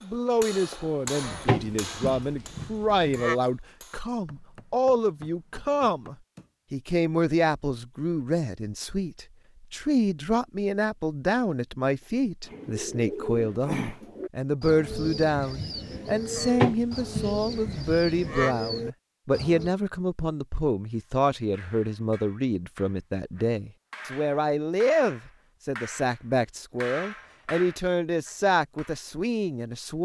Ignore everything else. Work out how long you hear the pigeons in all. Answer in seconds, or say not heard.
7 s.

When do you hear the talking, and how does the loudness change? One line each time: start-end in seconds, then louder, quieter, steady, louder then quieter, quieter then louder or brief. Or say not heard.
0.0-30.0 steady.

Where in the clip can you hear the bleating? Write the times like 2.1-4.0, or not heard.
1.2-3.4, 16.4-18.6.